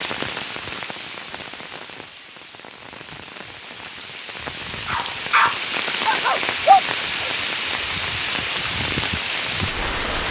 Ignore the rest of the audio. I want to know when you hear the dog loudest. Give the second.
7 s.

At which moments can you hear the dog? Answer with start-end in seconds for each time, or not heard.
4.8-7.3.